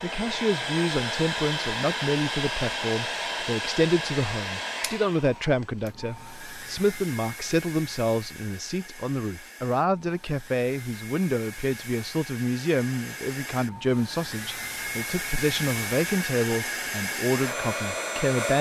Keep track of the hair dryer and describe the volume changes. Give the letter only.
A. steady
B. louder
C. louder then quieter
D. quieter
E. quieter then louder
E.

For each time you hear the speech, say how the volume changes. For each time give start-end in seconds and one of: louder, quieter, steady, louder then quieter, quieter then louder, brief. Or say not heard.
0.0-18.5 steady.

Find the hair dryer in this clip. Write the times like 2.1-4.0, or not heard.
0.0-18.5.